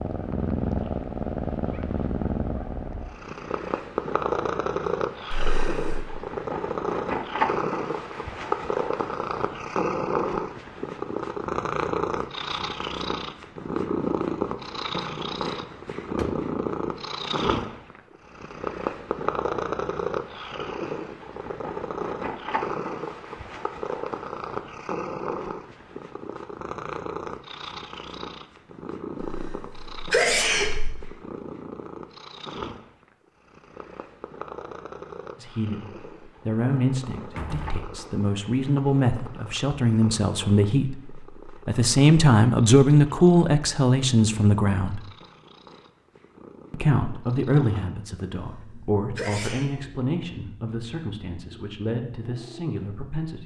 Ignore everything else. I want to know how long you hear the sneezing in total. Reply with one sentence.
The sneezing can be heard for 4 seconds in total.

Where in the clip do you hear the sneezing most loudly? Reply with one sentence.
The volume of the sneezing peaks at 30 seconds.